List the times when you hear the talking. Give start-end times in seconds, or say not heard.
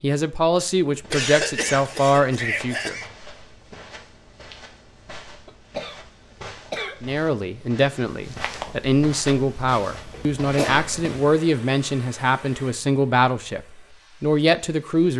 0.0-3.0, 7.0-13.6, 14.2-15.1.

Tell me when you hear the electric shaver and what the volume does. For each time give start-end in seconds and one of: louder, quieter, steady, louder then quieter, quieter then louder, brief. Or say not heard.
not heard.